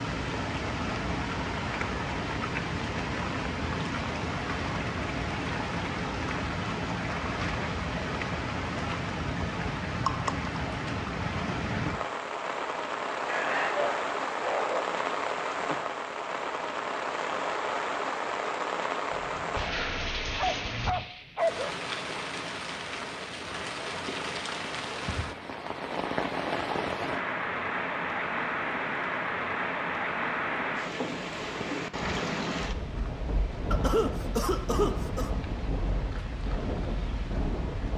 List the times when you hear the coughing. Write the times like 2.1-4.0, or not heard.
33.7-35.3.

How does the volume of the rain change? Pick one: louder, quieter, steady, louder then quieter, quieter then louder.
steady.